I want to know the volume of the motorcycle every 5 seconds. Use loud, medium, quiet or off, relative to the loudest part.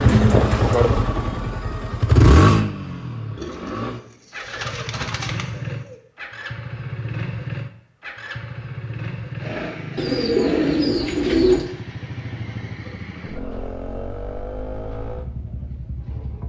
loud, medium, quiet, quiet.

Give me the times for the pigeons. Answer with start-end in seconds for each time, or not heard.
3.4-6.0, 9.9-11.7.